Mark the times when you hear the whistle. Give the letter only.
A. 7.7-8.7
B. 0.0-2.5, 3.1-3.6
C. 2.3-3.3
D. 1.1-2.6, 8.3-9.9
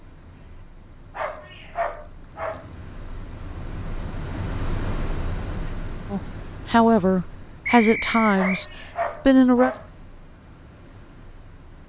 A.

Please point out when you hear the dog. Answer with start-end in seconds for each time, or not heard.
1.1-2.6, 8.3-9.9.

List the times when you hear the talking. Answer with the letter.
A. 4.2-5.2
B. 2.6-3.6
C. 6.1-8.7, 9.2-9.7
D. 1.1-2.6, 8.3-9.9
C.